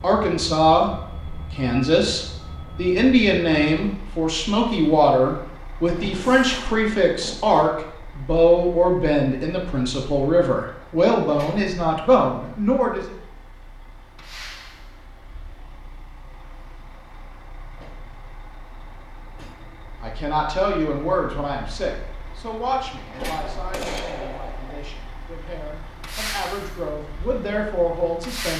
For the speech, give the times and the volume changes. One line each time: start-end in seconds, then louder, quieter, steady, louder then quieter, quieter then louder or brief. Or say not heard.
0.0-13.2 steady
20.0-28.5 quieter then louder.